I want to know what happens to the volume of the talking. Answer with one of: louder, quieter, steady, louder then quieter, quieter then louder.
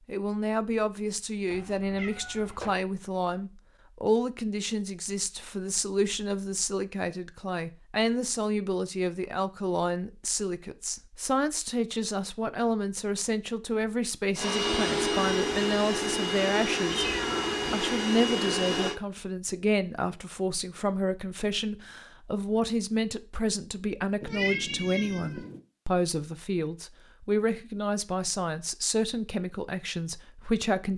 steady.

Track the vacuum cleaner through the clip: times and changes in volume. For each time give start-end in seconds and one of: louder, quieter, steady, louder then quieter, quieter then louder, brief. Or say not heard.
14.3-18.9 steady.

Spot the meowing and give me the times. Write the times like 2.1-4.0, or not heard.
1.5-2.8, 16.9-17.6, 24.2-25.6.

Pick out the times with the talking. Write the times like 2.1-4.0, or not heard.
0.1-17.1, 17.7-30.9.